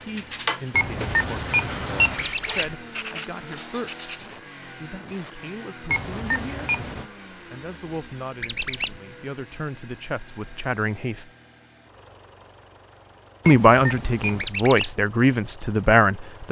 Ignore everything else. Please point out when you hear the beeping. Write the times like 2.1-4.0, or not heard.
0.7-2.3, 5.8-7.0, 13.4-14.4.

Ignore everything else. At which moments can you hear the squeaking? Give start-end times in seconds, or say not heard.
2.1-2.8, 8.4-9.0, 14.4-14.9.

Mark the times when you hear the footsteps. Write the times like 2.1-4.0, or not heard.
not heard.